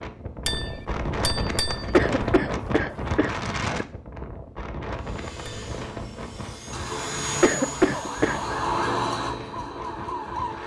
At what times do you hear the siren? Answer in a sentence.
You can hear the siren from 6.7 to 10.6 s.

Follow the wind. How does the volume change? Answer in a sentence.
The loudness of the wind goes down.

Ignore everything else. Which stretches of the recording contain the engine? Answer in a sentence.
You can hear the engine from 5.0 to 8.7 s.